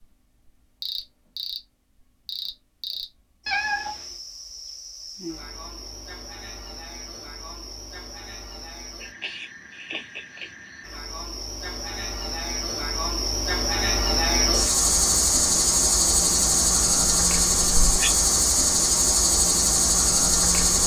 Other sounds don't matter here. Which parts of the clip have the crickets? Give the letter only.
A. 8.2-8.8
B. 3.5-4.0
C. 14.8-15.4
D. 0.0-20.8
D.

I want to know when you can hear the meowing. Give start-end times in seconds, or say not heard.
3.5-4.0.